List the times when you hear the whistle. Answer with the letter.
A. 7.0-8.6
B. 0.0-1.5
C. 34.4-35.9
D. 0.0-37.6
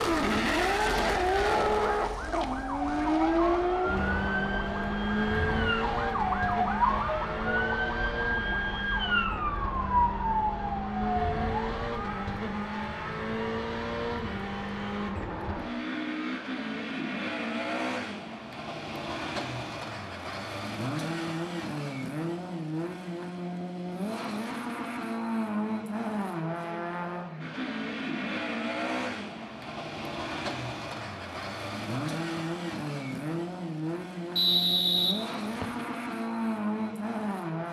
C.